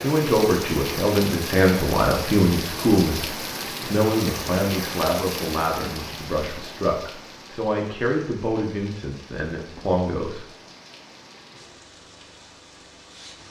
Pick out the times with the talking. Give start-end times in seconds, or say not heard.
0.0-10.4.